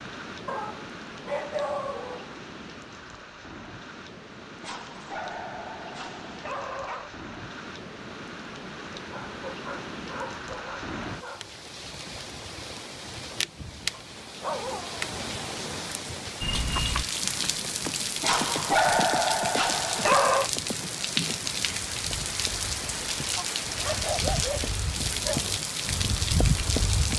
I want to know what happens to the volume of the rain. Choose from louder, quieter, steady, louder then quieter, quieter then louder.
louder.